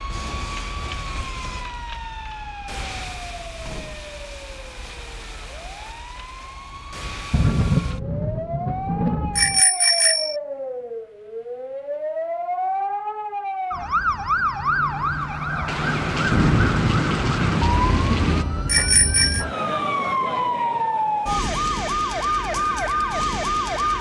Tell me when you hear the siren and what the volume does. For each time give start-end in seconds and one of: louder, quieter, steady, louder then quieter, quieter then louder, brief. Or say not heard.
0.0-23.9 louder.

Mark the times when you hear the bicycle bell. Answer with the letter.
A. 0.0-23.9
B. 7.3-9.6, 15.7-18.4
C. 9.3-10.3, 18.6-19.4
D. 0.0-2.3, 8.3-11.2
C.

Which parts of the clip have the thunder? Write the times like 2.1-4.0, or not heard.
7.3-9.6, 15.7-18.4.